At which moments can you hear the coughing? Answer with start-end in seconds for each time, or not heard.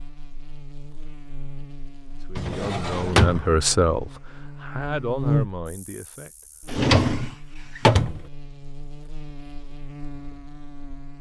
not heard.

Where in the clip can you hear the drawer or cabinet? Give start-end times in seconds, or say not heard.
2.4-3.5, 6.7-8.2.